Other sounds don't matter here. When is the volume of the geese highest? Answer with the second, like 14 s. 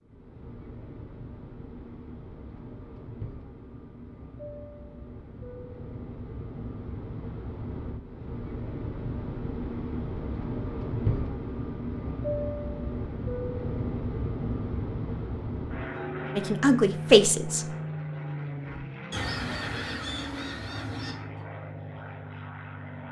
19 s.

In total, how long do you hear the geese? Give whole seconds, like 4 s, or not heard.
3 s.